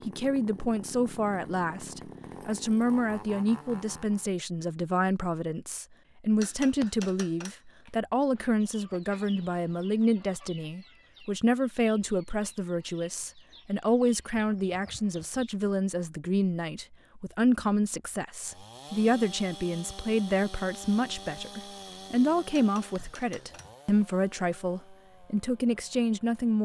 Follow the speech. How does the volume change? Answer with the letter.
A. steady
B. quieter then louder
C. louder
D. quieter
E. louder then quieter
A.